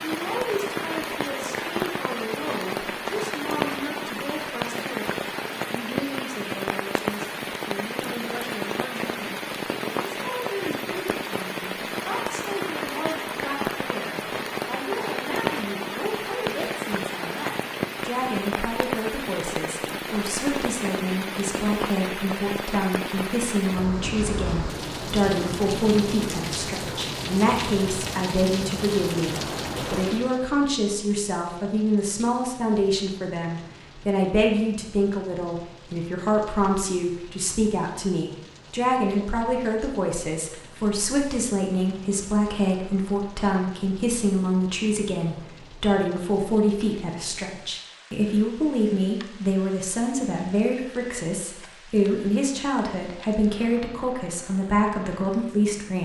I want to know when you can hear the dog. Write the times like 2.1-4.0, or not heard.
not heard.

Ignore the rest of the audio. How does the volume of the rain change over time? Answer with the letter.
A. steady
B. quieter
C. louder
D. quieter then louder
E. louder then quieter
B.